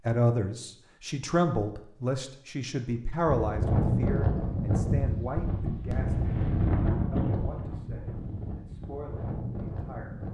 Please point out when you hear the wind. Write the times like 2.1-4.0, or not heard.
3.2-10.3.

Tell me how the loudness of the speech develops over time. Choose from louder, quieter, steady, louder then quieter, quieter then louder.
quieter.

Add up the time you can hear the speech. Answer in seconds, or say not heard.
10 s.